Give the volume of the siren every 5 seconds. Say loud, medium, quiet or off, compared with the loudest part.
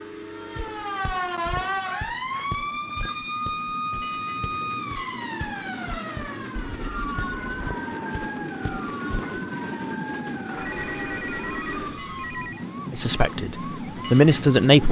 loud, medium, medium.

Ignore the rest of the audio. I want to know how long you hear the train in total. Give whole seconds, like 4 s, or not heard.
15 s.